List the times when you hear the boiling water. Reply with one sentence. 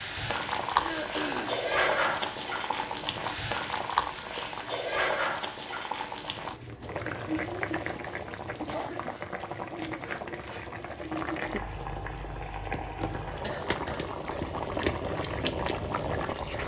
You can hear the boiling water from 0.0 to 16.6 s.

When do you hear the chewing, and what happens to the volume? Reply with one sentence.
The chewing can't be heard in this clip.